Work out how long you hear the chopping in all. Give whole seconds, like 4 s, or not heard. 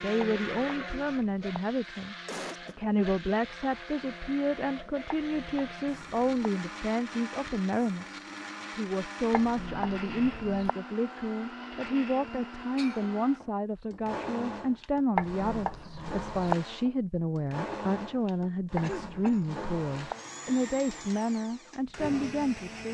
7 s.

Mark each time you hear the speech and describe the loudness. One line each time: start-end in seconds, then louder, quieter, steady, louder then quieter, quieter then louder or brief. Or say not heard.
0.0-22.8 steady.